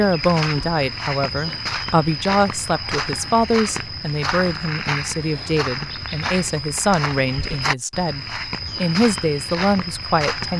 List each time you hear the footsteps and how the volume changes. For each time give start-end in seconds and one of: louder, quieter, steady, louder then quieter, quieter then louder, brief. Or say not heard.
0.0-10.5 steady.